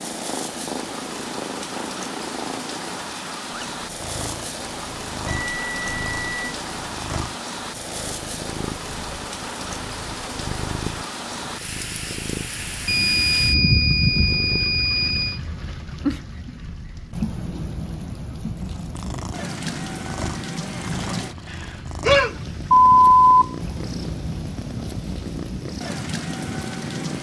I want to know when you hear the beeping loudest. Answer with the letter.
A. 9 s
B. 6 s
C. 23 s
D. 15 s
C.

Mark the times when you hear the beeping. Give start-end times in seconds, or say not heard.
5.5-6.5, 12.8-15.3, 21.5-23.4.